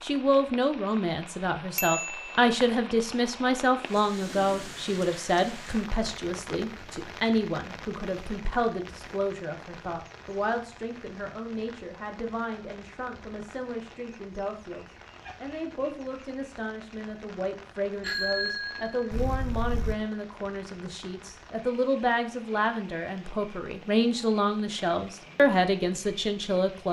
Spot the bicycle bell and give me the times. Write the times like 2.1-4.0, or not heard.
1.8-2.4, 18.0-19.9.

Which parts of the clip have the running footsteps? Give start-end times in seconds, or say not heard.
not heard.